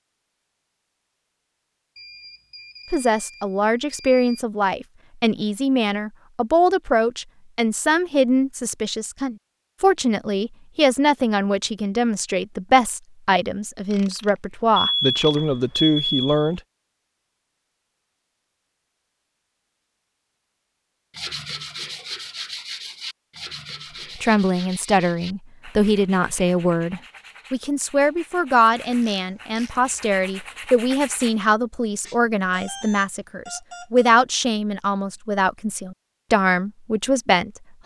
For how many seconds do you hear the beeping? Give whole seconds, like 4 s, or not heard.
6 s.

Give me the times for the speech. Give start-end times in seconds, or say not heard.
2.9-16.6, 24.1-37.8.